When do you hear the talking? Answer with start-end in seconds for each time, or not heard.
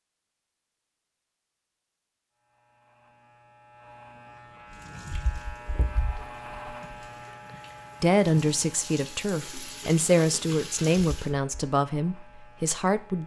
8.0-13.2.